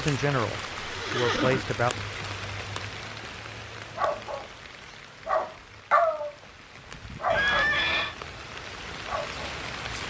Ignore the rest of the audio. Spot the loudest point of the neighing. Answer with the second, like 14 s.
8 s.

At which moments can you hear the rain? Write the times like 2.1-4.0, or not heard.
0.0-10.0.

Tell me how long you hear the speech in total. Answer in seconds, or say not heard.
2 s.